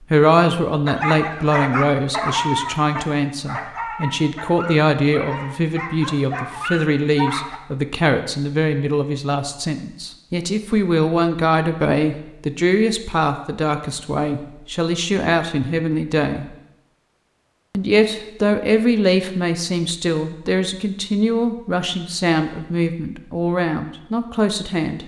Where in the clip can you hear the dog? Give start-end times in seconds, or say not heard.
0.8-7.6.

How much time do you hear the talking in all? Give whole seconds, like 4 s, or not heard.
24 s.